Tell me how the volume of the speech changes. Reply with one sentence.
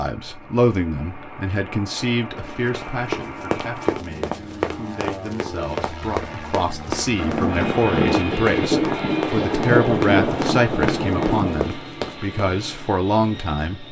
The loudness of the speech goes down, then up.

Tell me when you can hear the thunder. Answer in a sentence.
The thunder can be heard from 7.2 to 11.7 s.